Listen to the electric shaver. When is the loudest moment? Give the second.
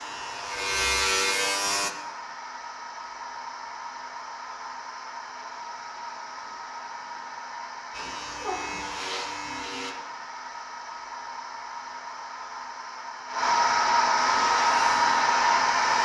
1 s.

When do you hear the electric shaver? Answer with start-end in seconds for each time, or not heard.
0.0-1.9, 7.9-9.9, 14.2-16.0.